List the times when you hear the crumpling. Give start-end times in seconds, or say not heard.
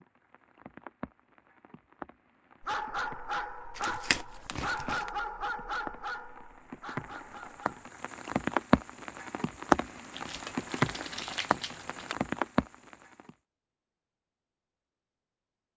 3.8-5.1, 10.1-12.2.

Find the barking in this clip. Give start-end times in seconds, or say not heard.
2.6-7.8.